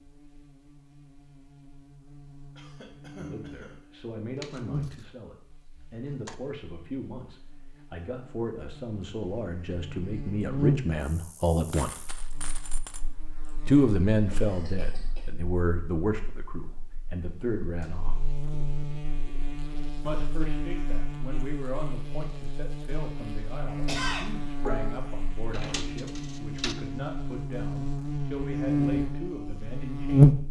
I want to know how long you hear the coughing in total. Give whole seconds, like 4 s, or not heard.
5 s.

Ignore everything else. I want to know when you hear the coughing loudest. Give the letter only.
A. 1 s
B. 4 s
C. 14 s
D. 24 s
D.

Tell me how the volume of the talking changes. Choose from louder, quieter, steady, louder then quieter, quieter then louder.
louder then quieter.